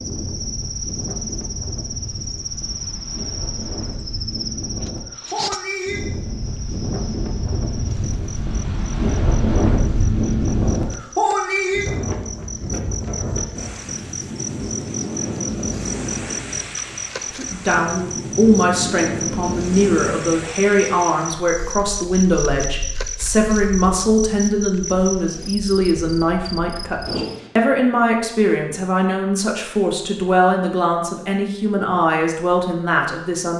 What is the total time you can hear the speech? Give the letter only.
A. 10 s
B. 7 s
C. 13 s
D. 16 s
D.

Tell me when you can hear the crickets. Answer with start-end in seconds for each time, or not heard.
0.0-27.4.